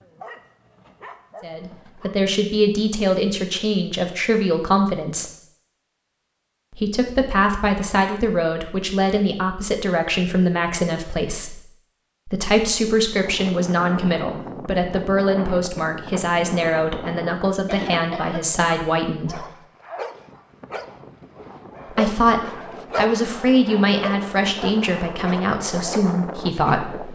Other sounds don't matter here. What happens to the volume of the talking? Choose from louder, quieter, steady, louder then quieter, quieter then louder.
steady.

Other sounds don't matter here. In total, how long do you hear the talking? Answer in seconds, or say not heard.
21 s.